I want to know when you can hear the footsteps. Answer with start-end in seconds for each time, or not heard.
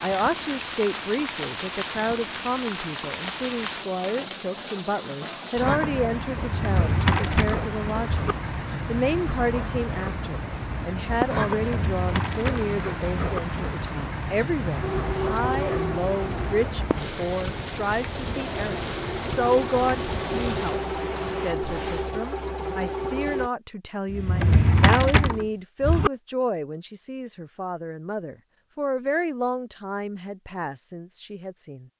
not heard.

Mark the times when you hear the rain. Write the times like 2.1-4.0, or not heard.
0.0-22.1.